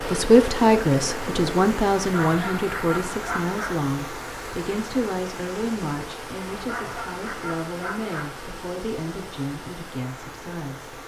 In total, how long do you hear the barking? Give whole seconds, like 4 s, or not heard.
4 s.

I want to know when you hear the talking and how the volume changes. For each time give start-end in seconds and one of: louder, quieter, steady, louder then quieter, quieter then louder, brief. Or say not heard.
0.0-10.9 quieter.